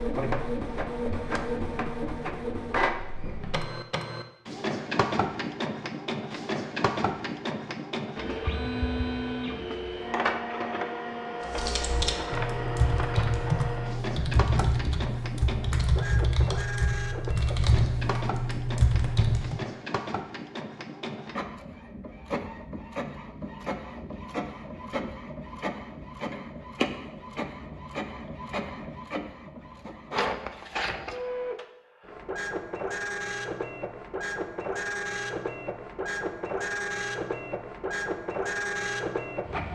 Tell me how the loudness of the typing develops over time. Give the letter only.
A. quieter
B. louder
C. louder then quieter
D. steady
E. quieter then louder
D.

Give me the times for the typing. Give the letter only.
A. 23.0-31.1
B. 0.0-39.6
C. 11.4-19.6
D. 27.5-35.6
C.